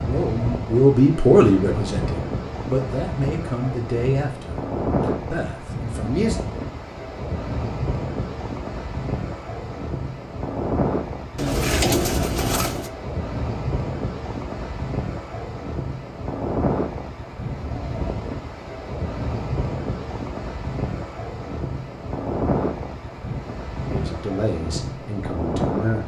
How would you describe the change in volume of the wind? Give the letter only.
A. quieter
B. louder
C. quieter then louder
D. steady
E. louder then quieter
D.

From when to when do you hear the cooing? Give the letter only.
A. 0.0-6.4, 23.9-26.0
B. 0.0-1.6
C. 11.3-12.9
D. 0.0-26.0
C.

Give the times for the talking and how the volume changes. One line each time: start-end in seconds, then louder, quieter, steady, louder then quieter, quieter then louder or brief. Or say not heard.
0.0-6.4 quieter
23.9-26.0 brief.